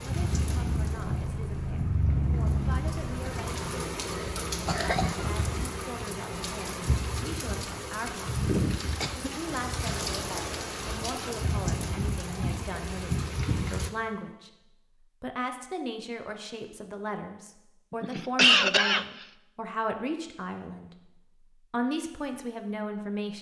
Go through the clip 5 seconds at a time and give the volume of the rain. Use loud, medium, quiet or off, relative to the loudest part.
loud, loud, loud, off, off.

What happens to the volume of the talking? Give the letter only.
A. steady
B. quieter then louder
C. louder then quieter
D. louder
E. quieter
D.